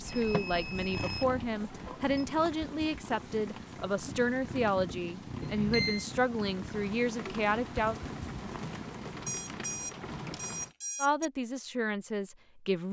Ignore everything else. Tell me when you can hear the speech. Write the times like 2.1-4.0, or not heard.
0.0-8.0, 11.0-12.8.